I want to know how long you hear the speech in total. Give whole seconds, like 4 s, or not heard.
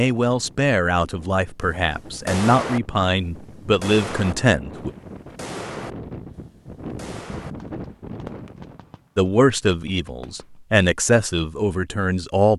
8 s.